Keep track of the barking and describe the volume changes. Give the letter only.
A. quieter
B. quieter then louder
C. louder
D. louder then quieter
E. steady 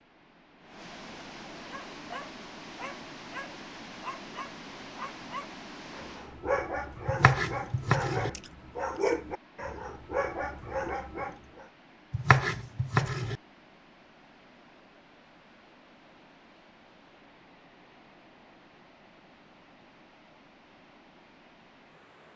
C.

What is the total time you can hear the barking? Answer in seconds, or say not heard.
10 s.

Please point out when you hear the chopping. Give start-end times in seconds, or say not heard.
7.0-8.3, 12.1-13.3.